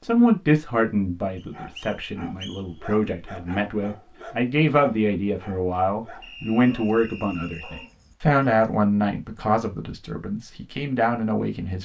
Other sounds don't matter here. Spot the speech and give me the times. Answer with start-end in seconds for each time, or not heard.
0.1-11.7.